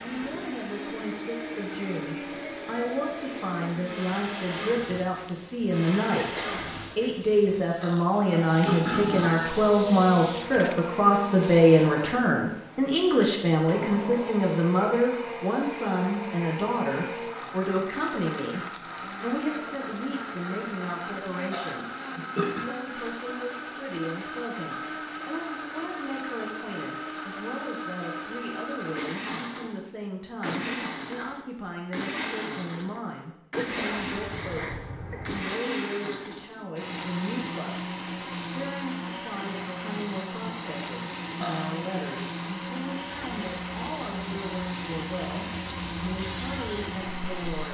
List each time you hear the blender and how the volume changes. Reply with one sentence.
You can hear the blender from 0.0 to 47.6 s, at a steady volume.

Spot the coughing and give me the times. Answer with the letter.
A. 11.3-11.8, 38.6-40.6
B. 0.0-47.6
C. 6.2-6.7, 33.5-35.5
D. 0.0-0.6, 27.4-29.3
C.